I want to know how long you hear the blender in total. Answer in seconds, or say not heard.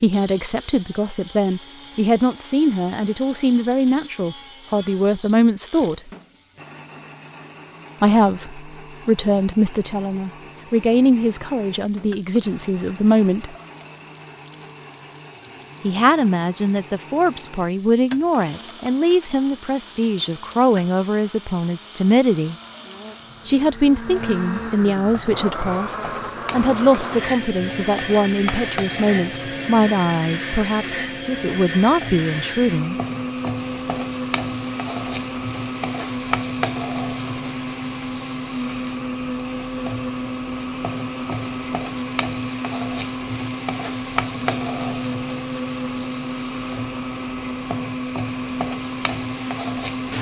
50 s.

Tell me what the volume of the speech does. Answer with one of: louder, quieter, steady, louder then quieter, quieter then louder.
steady.